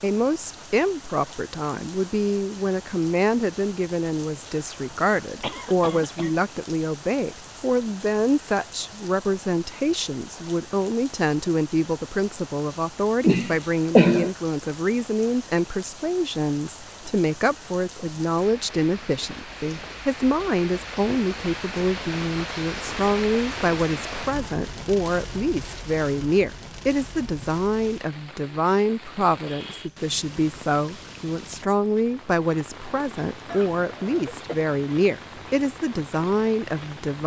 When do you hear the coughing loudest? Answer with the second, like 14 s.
14 s.